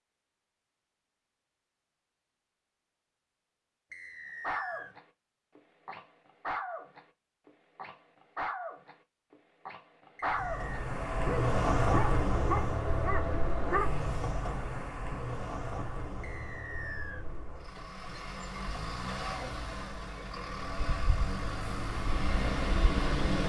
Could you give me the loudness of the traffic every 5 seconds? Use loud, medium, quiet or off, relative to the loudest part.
off, off, loud, medium, loud.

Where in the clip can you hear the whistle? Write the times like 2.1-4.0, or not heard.
3.9-5.0, 10.2-10.8, 16.2-17.2.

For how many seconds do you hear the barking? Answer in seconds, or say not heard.
10 s.